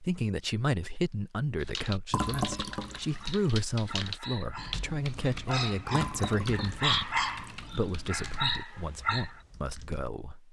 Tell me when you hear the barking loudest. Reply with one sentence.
The volume of the barking peaks at 7 seconds.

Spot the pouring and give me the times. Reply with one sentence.
You can hear the pouring from 2.1 to 3.3 s and from 5.9 to 7.8 s.